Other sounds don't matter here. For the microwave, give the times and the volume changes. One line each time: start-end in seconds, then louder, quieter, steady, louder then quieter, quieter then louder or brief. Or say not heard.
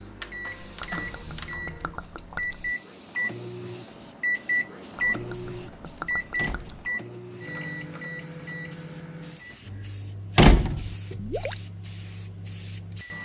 0.0-13.2 louder then quieter.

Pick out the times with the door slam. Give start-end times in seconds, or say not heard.
0.5-1.2, 6.3-6.9, 10.3-10.9.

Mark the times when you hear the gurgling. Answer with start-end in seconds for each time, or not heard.
0.8-2.8, 5.0-6.9, 11.1-11.7.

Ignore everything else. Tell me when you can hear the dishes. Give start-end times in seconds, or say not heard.
not heard.